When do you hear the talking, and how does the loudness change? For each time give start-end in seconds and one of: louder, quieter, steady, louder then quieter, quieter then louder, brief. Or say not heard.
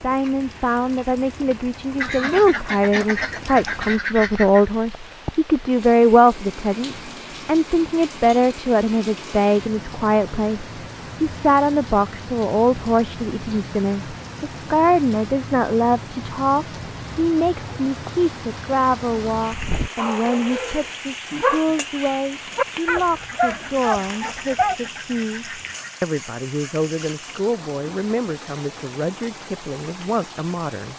0.0-30.9 quieter.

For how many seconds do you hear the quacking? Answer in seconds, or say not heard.
5 s.